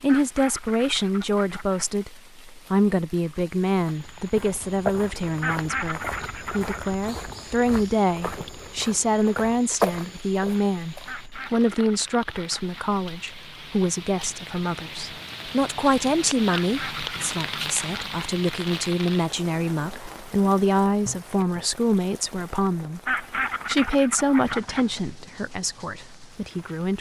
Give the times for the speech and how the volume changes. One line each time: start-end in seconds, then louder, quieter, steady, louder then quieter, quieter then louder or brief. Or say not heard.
0.0-26.9 steady.